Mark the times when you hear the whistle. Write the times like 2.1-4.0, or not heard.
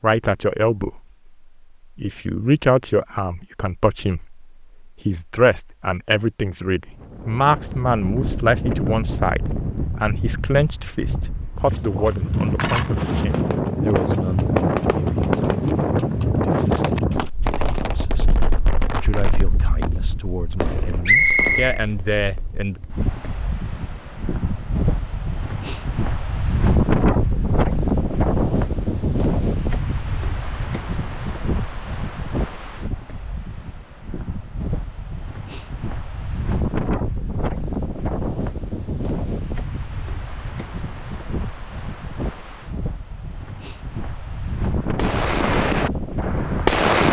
21.1-21.8.